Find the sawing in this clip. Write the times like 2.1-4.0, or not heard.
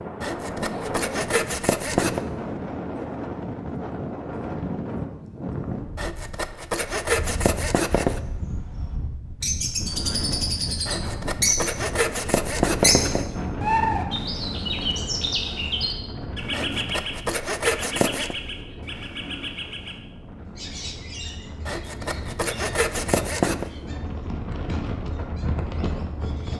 0.2-2.2, 6.0-8.2, 10.8-13.2, 16.5-18.4, 21.6-23.7.